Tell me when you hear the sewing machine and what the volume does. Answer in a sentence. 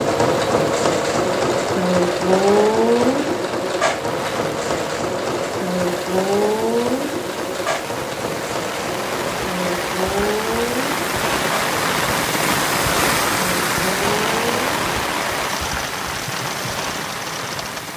The sewing machine can be heard from 0.0 to 17.9 s, getting quieter.